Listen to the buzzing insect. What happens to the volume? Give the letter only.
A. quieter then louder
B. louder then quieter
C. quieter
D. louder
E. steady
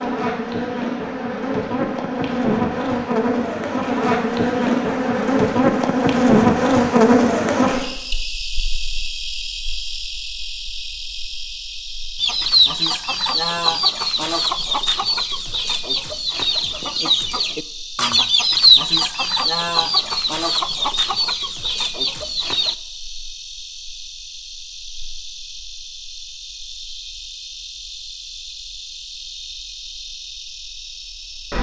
C.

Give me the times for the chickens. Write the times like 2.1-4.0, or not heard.
12.2-22.8.